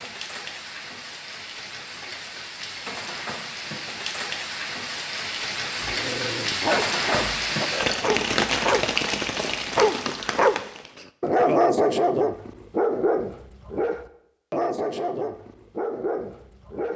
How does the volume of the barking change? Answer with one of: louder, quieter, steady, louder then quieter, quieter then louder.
louder then quieter.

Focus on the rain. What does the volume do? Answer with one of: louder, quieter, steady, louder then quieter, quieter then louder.
louder.